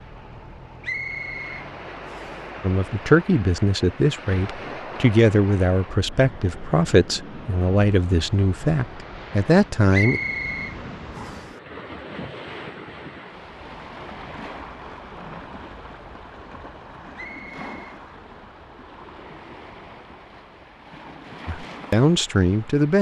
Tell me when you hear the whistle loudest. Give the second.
10 s.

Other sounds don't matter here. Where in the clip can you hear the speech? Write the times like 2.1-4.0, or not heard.
2.6-10.2, 21.4-22.9.